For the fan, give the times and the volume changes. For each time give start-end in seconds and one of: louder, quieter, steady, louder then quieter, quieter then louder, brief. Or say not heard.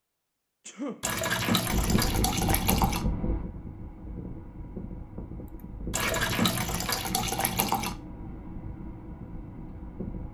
1.6-10.2 quieter.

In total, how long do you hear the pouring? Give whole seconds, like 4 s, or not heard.
4 s.